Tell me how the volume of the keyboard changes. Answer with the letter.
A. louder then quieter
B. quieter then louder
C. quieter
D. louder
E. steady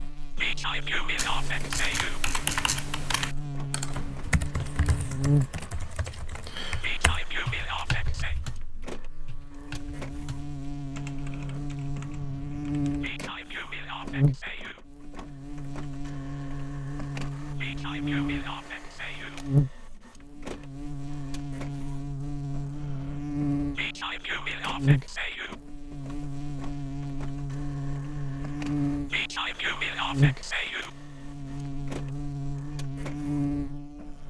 C.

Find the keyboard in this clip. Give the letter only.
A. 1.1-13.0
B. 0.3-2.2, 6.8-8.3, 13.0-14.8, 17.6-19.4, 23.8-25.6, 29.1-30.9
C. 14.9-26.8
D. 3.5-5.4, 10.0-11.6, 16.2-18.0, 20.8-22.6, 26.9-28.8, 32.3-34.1
A.